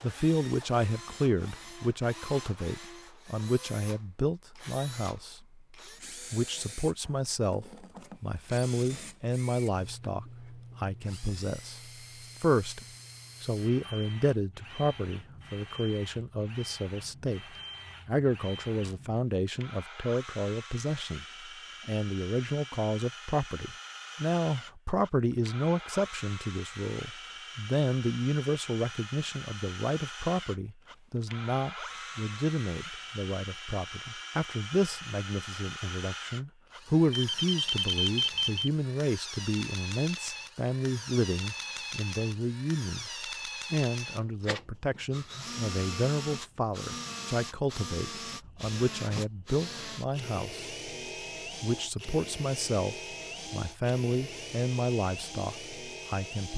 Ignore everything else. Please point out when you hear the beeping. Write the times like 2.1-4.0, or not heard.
37.1-38.7.